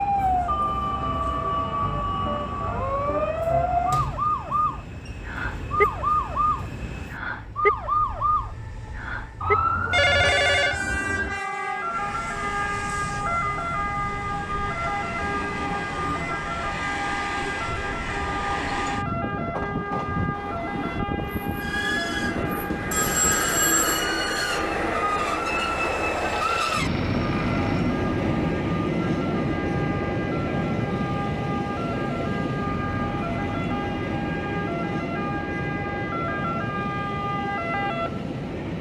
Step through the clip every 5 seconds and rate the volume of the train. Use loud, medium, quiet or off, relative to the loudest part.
quiet, quiet, medium, medium, loud, loud, loud, medium.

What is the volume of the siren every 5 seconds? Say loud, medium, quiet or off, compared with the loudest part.
loud, loud, loud, medium, medium, medium, medium, medium.